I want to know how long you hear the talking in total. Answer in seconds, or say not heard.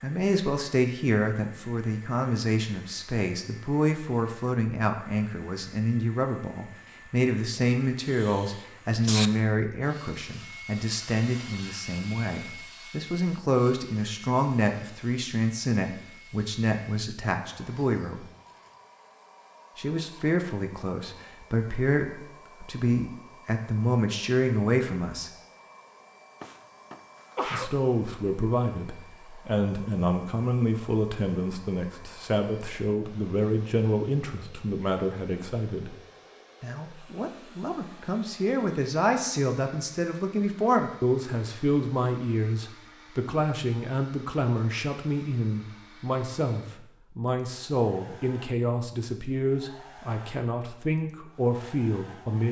48 s.